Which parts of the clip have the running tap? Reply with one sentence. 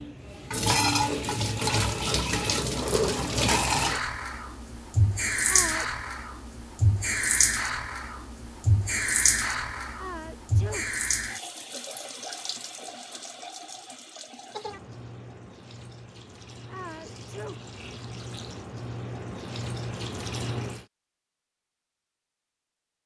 You can hear the running tap from 0.0 to 20.9 s.